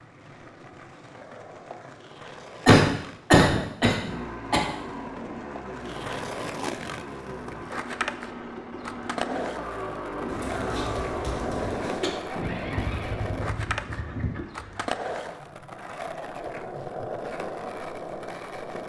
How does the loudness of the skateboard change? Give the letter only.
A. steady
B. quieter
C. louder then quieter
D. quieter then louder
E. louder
E.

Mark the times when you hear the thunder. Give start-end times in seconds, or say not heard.
12.3-14.3.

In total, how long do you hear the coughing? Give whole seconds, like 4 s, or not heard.
4 s.